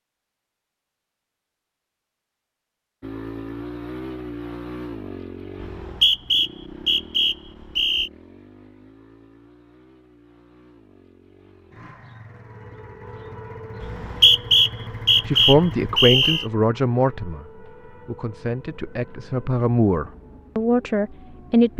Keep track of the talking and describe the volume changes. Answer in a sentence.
The volume of the talking goes down, then up.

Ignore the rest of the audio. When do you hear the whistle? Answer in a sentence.
You can hear the whistle from 5.6 to 8.1 s and from 13.8 to 16.4 s.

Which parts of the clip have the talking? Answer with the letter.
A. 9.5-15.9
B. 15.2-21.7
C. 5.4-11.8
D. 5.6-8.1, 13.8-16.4
B.